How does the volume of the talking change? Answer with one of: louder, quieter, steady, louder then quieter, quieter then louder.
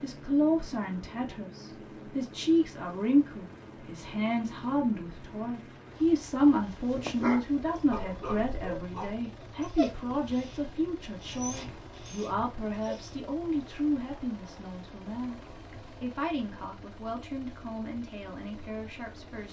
quieter.